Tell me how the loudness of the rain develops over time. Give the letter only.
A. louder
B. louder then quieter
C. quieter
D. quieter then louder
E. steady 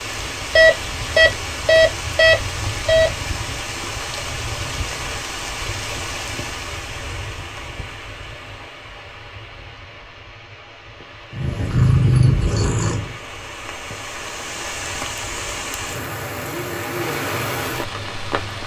D.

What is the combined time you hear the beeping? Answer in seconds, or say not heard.
3 s.